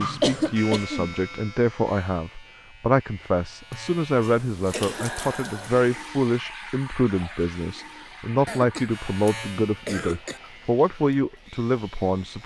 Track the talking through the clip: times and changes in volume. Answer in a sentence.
The talking can be heard from 0.0 to 12.4 s, at a steady volume.